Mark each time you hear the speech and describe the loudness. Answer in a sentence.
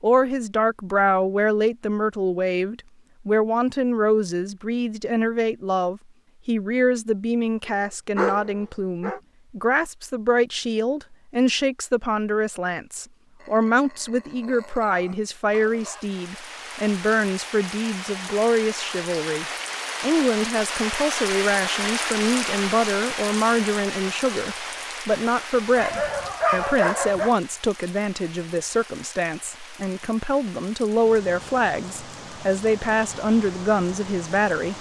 You can hear the speech from 0.0 to 34.7 s, at a steady volume.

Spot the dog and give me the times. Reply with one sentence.
You can hear the dog from 7.7 to 9.2 s, from 13.4 to 16.1 s and from 25.8 to 27.4 s.